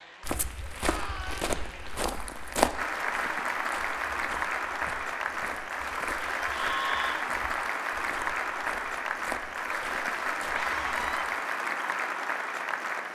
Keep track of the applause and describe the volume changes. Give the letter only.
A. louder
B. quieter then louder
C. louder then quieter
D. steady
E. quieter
A.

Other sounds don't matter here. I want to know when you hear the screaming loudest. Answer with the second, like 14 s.
7 s.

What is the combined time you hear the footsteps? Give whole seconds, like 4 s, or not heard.
11 s.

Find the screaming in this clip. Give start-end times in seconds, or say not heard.
0.8-1.5, 6.4-7.2, 10.5-11.2.